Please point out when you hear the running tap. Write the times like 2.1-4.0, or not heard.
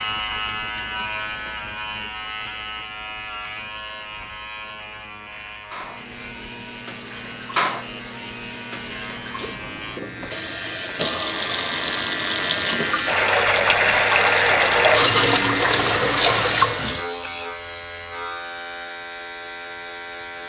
5.7-17.1.